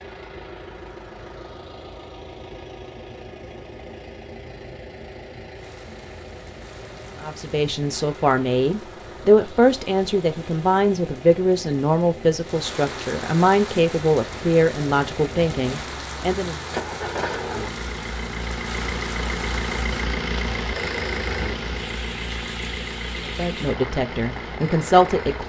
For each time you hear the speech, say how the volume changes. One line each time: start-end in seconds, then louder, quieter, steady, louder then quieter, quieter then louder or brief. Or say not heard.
7.2-16.6 steady
23.2-25.4 brief.